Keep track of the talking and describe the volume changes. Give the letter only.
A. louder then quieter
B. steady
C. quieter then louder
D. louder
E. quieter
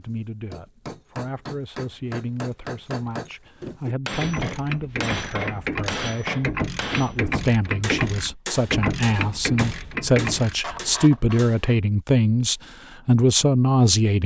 D.